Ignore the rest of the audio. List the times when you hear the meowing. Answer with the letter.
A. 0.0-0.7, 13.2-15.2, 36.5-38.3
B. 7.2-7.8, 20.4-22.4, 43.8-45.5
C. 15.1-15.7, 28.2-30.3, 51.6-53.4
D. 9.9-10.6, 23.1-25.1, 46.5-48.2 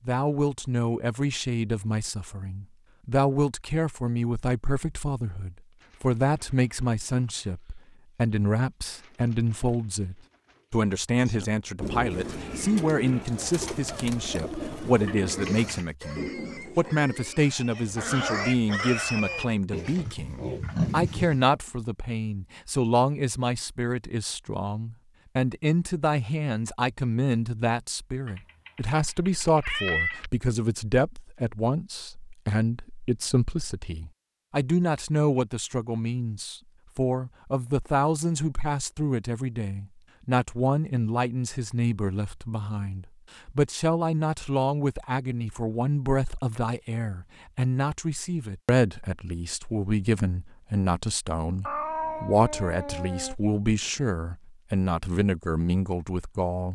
C.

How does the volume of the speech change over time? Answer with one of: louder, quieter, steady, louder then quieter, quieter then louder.
steady.